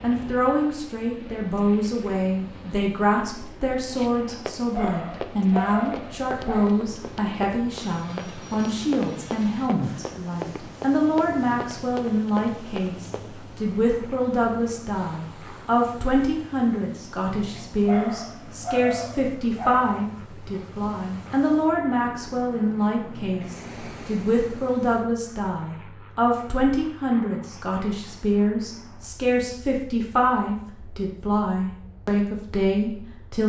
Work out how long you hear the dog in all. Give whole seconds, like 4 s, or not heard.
4 s.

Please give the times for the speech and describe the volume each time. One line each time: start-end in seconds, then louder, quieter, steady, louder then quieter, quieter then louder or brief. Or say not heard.
0.0-33.4 steady.